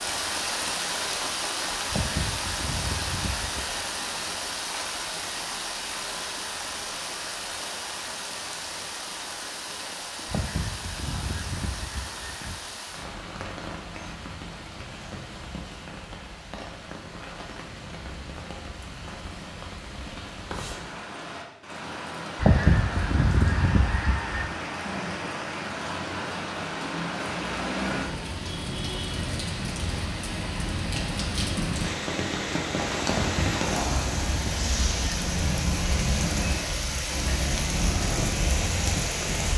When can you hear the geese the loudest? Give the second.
23 s.